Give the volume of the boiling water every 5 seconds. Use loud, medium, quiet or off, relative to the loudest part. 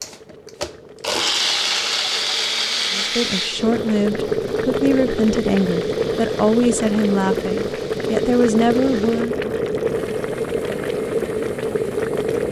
medium, loud, loud.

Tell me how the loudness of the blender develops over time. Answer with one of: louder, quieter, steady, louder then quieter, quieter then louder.
quieter.